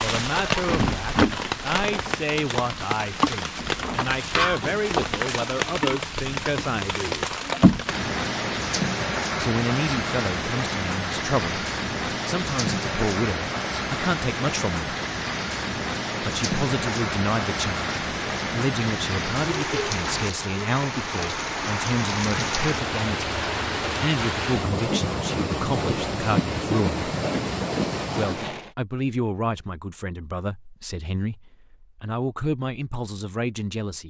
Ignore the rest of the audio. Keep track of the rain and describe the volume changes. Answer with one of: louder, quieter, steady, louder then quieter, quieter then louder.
steady.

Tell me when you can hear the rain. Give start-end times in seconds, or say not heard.
0.0-28.7.